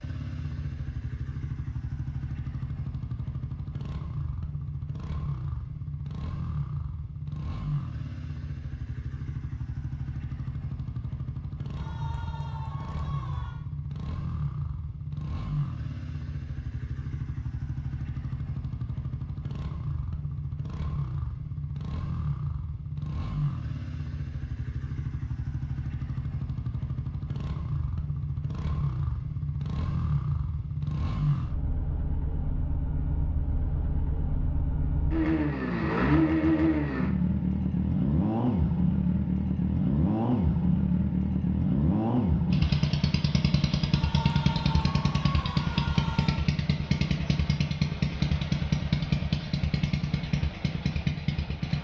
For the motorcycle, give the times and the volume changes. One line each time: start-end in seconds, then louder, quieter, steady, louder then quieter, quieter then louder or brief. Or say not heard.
0.0-51.7 louder.